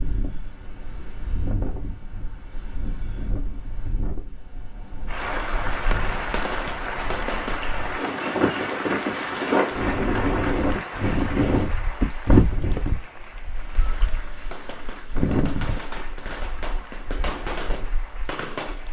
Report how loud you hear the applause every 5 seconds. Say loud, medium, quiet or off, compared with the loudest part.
off, loud, medium, quiet.